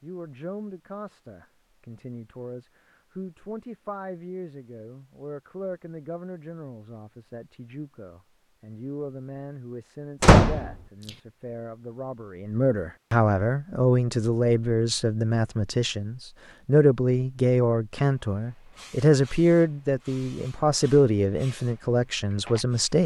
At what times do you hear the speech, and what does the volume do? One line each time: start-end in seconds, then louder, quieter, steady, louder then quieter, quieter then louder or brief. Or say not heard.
0.0-23.0 louder.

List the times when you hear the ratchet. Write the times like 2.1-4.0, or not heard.
not heard.